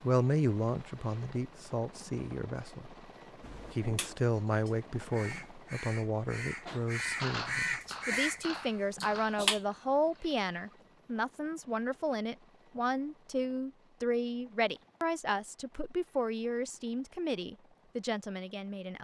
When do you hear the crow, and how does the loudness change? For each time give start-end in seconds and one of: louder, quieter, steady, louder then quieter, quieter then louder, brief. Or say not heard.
3.4-9.6 louder.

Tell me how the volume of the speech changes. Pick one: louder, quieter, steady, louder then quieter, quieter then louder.
steady.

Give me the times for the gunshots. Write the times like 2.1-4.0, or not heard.
7.0-10.8.